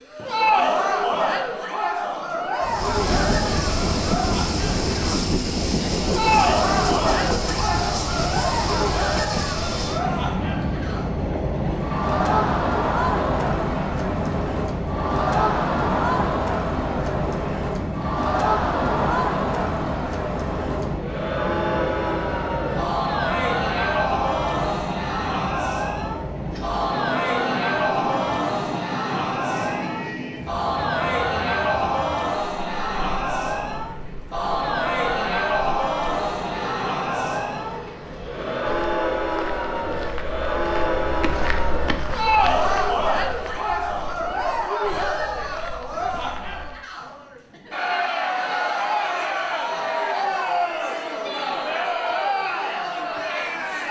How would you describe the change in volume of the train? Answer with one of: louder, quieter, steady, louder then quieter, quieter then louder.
quieter.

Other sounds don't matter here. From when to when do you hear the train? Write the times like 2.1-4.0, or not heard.
2.6-39.1.